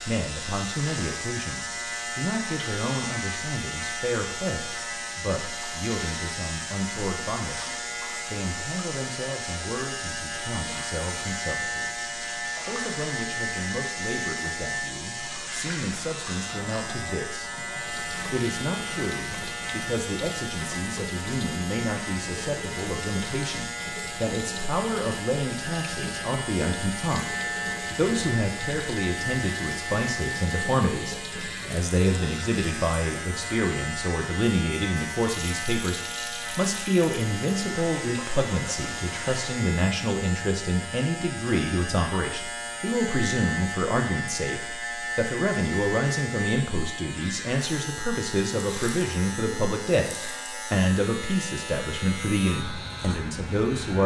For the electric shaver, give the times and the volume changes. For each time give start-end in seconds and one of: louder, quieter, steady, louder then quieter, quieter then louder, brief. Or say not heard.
0.0-54.0 steady.